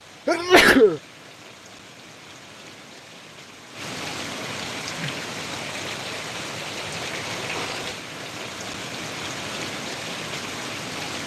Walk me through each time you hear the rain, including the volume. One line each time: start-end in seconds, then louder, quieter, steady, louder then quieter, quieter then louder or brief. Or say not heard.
0.0-11.2 louder.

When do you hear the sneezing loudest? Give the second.
1 s.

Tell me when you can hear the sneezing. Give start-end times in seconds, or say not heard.
0.2-1.0, 7.3-7.8.